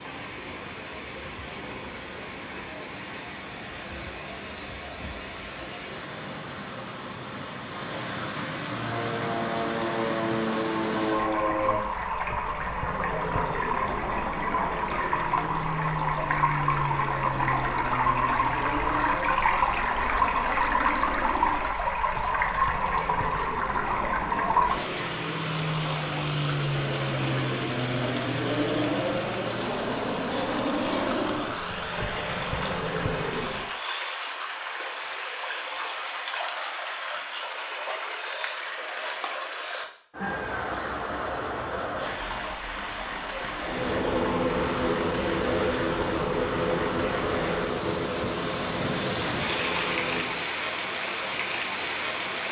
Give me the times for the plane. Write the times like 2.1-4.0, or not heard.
8.7-33.7, 43.6-50.5.